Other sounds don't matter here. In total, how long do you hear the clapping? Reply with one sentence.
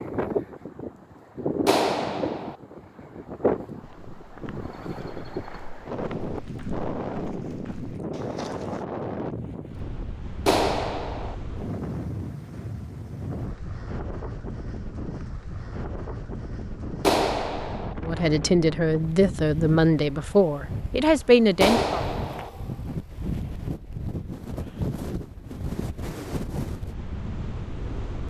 The clapping can be heard for 4 seconds in total.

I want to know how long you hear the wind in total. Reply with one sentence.
You can hear the wind for 28 seconds altogether.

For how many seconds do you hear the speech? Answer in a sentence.
The speech can be heard for 4 seconds in total.